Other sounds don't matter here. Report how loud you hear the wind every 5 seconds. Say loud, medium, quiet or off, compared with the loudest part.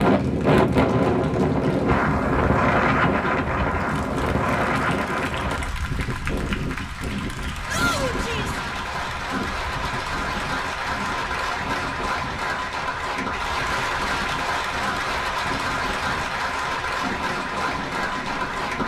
loud, medium, quiet, quiet.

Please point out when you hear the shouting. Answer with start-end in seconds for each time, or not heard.
7.7-8.6.